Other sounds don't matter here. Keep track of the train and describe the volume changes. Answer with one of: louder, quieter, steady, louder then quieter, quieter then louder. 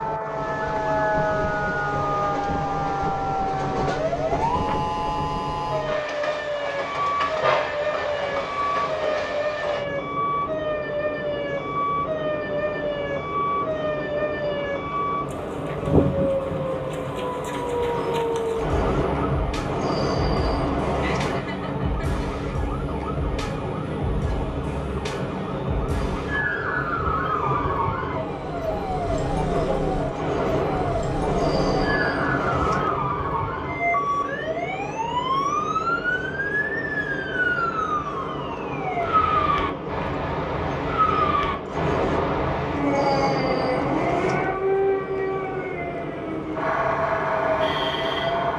steady.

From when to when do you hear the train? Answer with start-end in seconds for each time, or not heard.
0.0-48.5.